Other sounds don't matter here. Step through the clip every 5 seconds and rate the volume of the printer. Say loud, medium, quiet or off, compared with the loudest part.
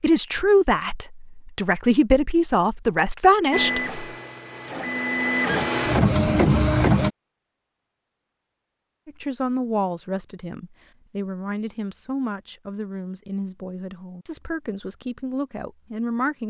medium, loud, off, off.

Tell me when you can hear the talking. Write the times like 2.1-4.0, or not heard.
0.0-4.0, 9.1-16.4.